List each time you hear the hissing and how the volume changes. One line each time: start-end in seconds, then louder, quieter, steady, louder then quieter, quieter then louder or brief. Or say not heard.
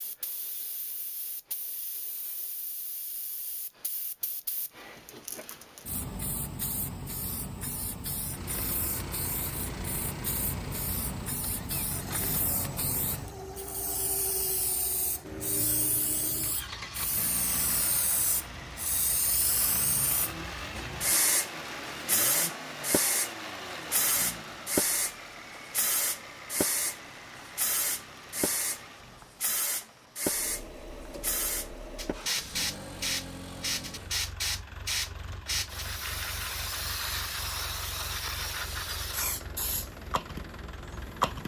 0.0-41.4 louder.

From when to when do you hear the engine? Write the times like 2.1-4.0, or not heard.
8.2-41.4.